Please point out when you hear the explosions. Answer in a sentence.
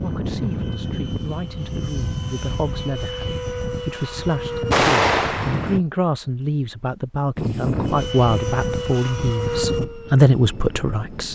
The explosions can be heard from 4.7 to 5.8 s.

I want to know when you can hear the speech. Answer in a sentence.
The speech can be heard from 0.0 to 11.3 s.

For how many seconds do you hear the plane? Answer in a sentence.
You can hear the plane for 10 seconds altogether.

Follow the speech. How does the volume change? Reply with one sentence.
The loudness of the speech goes up.